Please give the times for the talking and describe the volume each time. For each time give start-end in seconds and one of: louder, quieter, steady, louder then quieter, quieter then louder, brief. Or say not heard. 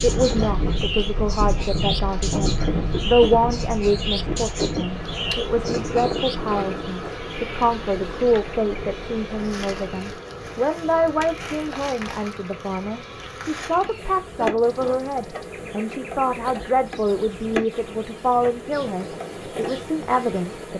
0.0-20.7 steady.